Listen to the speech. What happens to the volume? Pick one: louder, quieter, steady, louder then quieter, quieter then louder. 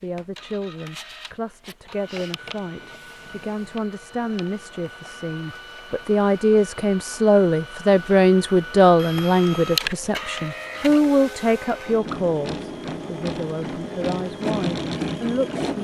louder then quieter.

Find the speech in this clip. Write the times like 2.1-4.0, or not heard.
0.0-15.7.